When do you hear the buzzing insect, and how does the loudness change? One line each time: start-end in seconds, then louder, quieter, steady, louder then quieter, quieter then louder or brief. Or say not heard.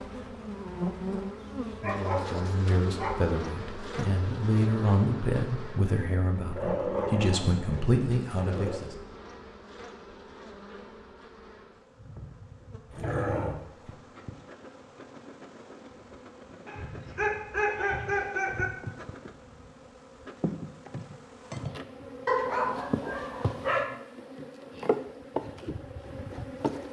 0.0-26.8 quieter then louder.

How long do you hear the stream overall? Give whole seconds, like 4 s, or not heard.
not heard.